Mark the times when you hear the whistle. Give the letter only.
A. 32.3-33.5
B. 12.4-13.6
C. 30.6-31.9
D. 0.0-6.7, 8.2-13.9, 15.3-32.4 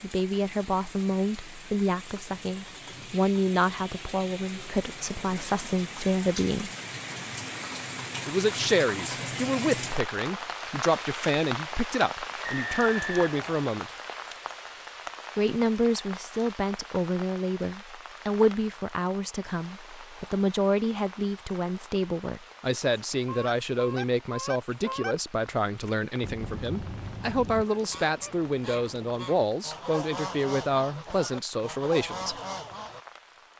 B.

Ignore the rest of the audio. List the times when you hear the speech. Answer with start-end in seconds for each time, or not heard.
0.0-6.7, 8.2-13.9, 15.3-32.4.